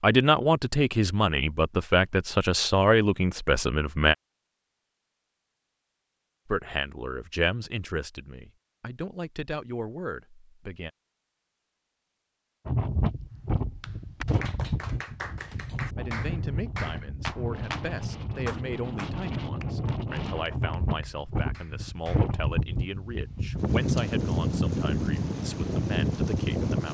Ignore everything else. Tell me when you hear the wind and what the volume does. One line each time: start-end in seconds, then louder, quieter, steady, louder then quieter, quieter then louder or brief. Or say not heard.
12.7-26.8 louder.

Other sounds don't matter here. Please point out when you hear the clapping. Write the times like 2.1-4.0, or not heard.
13.6-22.3.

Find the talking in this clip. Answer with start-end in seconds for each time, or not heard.
0.0-4.2, 6.5-10.9, 15.9-26.8.